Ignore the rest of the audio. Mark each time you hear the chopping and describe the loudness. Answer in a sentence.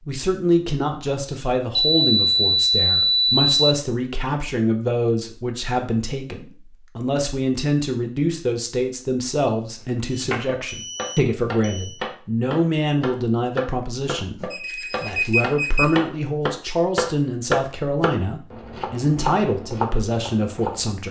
You can hear the chopping from 9.8 to 20.9 s, getting louder then quieter.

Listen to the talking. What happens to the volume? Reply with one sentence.
The loudness of the talking stays about the same.